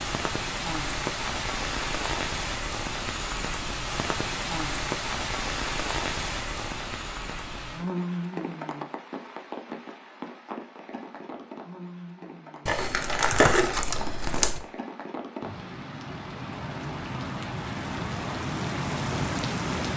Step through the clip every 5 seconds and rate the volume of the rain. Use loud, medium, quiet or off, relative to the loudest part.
loud, loud, medium, loud.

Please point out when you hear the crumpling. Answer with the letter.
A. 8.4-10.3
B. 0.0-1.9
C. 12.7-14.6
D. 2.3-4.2
C.